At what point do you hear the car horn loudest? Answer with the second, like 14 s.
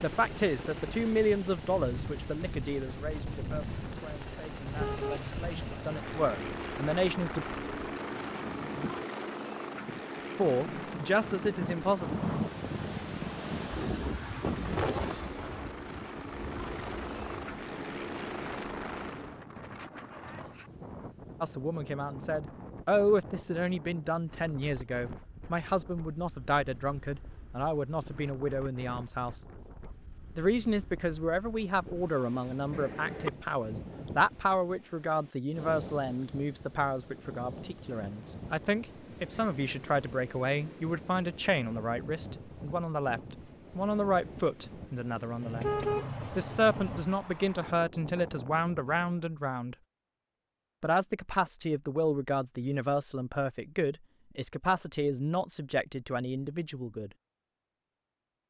46 s.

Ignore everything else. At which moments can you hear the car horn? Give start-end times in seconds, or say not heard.
4.5-6.5, 32.7-33.3, 45.4-47.0.